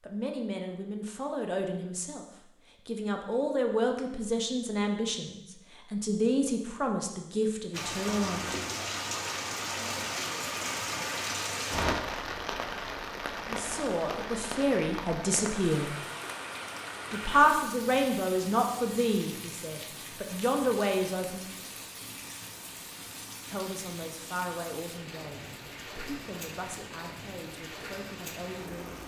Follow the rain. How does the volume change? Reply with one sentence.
The volume of the rain goes down.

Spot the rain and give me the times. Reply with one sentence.
The rain can be heard from 7.7 to 29.0 s.